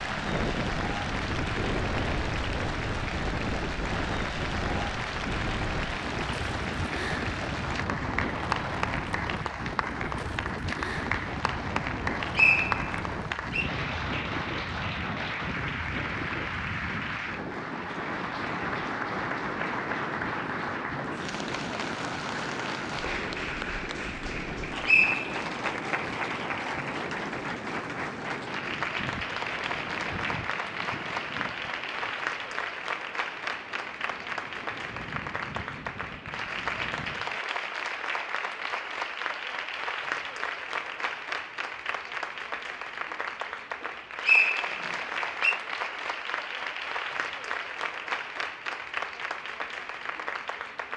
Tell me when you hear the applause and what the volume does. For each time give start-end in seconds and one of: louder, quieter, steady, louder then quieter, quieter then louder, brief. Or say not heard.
0.0-50.9 steady.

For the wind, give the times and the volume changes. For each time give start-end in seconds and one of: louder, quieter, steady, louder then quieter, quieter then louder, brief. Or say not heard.
0.0-37.4 quieter.